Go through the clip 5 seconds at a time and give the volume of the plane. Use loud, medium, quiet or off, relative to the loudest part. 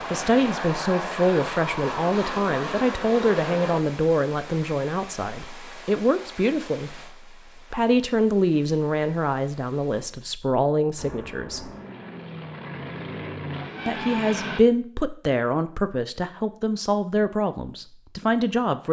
loud, off, loud, off.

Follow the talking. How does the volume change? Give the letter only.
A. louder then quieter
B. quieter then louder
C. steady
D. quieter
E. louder
C.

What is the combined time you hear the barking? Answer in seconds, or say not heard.
not heard.